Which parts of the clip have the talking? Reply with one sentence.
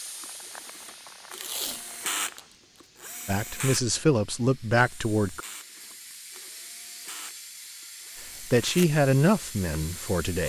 You can hear the talking from 3.2 to 5.4 s and from 8.4 to 10.4 s.